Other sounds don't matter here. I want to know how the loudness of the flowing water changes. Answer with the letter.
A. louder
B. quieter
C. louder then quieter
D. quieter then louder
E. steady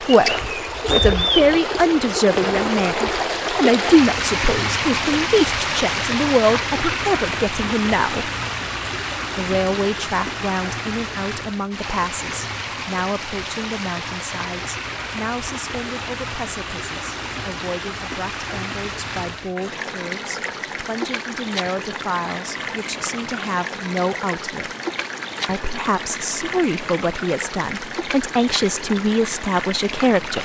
B.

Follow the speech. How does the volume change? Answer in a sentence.
The volume of the speech goes down, then up.